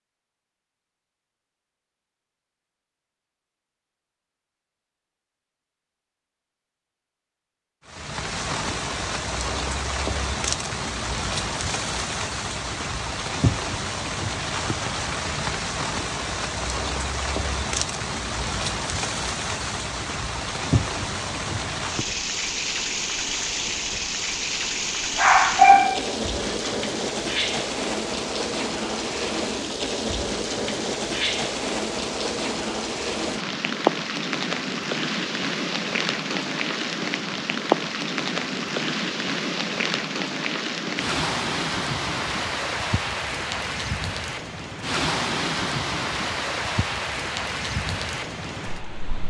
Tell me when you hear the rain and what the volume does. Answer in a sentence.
The rain can be heard from 7.8 to 49.2 s, at a steady volume.